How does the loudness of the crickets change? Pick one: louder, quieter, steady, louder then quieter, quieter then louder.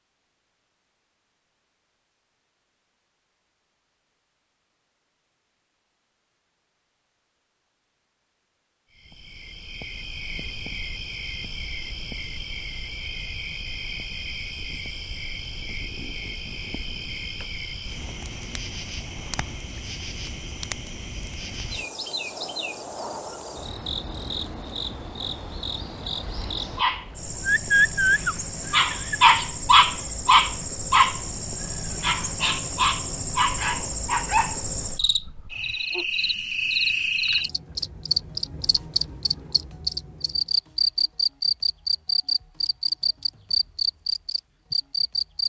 louder.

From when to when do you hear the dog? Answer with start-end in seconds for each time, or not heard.
26.8-31.2, 32.0-36.0.